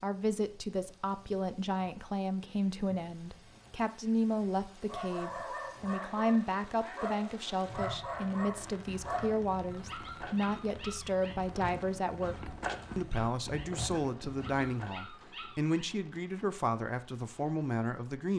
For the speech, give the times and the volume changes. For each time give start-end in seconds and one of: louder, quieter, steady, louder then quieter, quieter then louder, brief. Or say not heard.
0.0-18.3 steady.